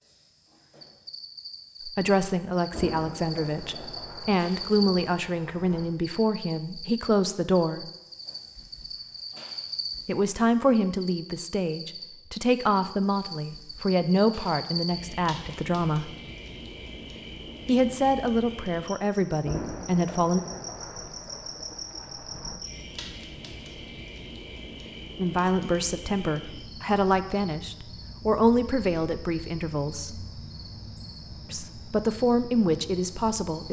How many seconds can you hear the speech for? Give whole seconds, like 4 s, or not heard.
22 s.